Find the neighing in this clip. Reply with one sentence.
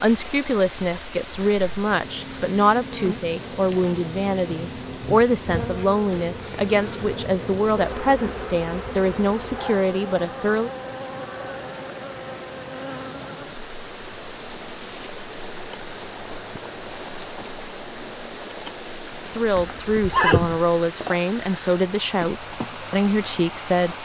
The neighing can be heard from 19.6 to 20.6 s.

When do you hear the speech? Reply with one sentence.
You can hear the speech from 0.0 to 10.7 s and from 19.2 to 24.0 s.